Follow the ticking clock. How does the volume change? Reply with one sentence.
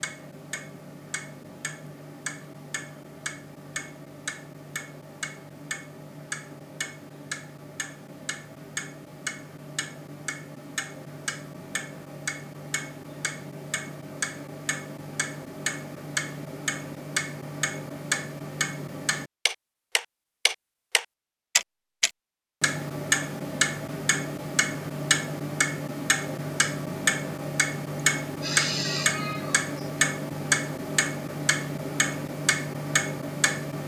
The volume of the ticking clock goes up.